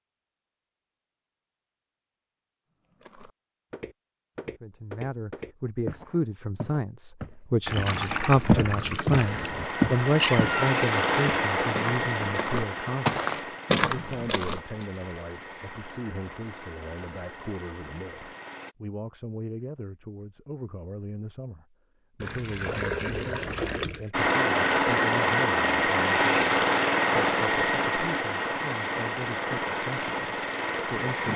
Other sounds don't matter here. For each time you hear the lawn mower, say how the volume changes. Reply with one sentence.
The lawn mower can be heard from 9.1 to 18.8 s, getting quieter; and from 24.1 to 31.3 s, getting quieter.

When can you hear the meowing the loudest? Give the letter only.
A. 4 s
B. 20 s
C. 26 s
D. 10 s
D.